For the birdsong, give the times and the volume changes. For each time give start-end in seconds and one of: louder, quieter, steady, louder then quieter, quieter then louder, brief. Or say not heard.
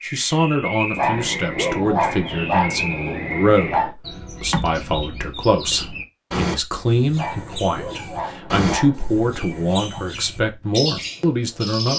0.0-11.9 steady.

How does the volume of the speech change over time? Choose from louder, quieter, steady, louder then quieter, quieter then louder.
steady.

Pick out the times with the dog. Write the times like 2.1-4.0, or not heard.
0.9-3.9, 7.2-10.1.